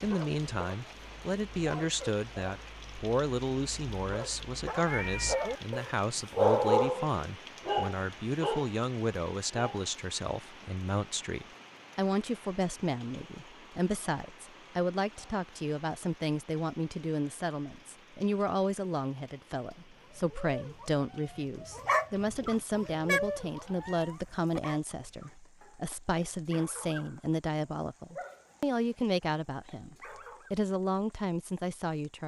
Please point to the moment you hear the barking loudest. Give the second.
7 s.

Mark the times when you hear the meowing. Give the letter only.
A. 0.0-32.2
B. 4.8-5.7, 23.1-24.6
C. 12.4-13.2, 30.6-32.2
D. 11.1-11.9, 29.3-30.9
B.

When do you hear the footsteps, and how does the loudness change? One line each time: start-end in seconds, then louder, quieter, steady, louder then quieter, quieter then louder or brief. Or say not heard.
not heard.